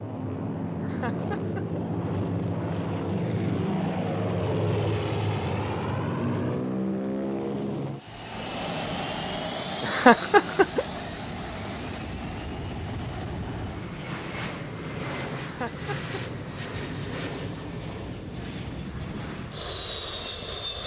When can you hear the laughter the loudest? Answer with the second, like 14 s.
10 s.